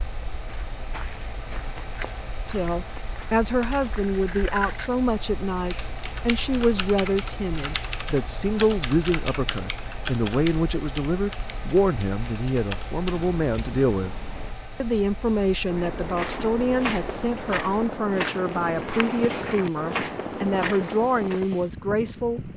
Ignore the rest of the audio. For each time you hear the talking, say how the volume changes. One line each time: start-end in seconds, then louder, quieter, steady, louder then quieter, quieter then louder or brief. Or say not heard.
2.5-14.2 steady
14.8-22.5 steady.